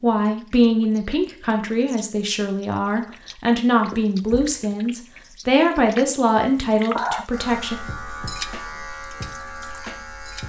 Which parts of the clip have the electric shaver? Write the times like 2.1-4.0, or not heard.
7.3-10.4.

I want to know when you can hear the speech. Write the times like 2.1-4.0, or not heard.
0.0-7.8.